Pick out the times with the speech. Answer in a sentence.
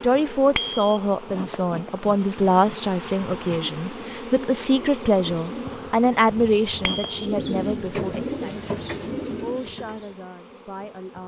You can hear the speech from 0.0 to 8.7 s and from 9.4 to 11.2 s.